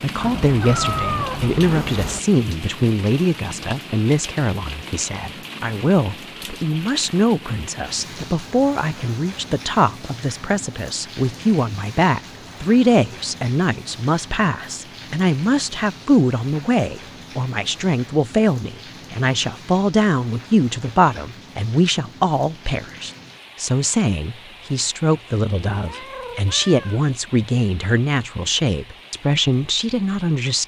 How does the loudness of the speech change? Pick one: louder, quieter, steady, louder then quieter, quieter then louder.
steady.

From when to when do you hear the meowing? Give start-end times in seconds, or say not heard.
0.2-2.2, 25.7-27.1.